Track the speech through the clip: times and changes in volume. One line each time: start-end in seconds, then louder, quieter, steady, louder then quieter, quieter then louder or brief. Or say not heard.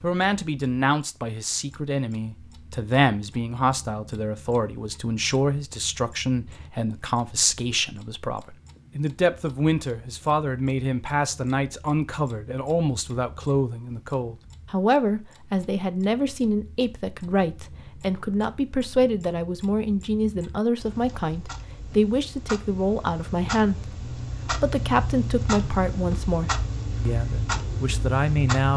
0.0-28.7 steady.